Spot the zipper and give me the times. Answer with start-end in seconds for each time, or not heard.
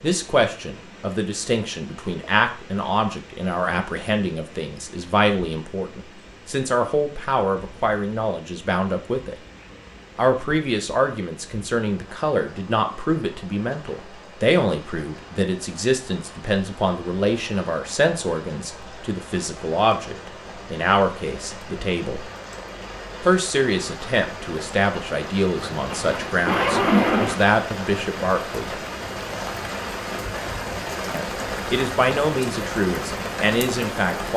25.7-27.4.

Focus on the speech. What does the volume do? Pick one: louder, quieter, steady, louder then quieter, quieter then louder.
steady.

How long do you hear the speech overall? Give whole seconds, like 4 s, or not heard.
30 s.